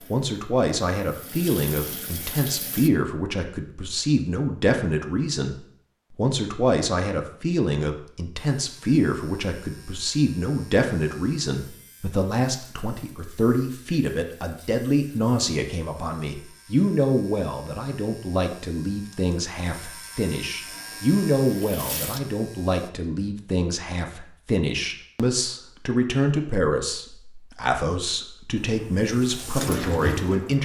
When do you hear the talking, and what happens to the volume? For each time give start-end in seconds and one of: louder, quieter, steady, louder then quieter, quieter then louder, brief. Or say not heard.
0.1-30.6 steady.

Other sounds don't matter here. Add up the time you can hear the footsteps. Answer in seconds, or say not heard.
not heard.